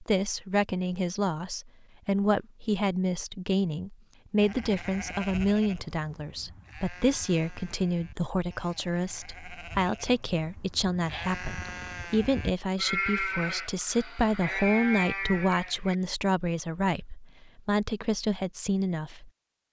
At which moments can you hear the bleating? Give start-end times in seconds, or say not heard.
4.4-15.9.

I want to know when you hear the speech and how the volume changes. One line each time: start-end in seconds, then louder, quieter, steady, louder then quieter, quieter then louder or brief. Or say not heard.
0.0-19.3 steady.